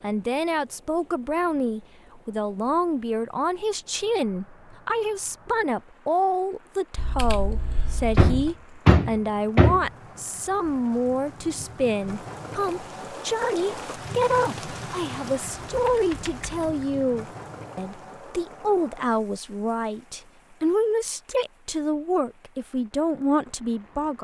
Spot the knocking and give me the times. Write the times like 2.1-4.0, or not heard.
8.2-9.9.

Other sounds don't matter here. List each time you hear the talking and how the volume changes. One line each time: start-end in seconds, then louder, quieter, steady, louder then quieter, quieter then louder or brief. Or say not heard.
0.0-24.1 steady.